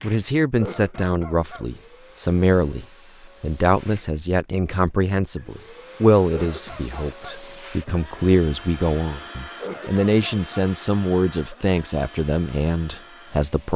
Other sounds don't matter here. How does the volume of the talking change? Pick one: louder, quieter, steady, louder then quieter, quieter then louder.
steady.